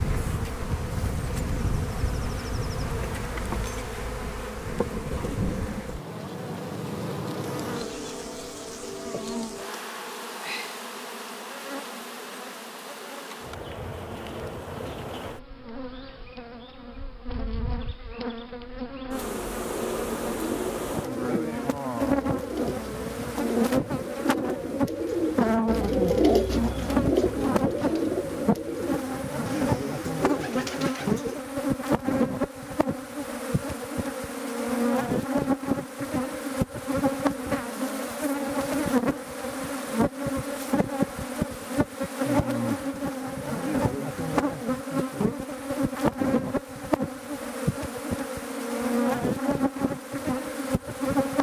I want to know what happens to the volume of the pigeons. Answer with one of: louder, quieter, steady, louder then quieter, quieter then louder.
louder then quieter.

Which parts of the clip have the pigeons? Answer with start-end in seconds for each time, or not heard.
20.2-31.4.